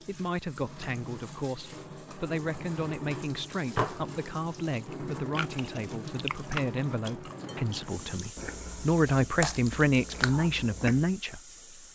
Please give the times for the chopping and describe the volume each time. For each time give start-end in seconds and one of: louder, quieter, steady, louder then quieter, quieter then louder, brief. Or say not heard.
not heard.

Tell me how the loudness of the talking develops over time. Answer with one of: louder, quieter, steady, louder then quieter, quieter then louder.
louder.